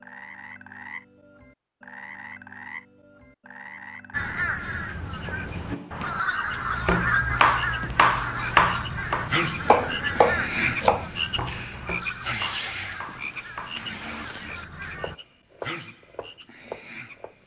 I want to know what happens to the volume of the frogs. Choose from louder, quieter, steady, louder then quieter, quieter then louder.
louder then quieter.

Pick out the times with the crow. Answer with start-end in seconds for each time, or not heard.
4.1-15.2.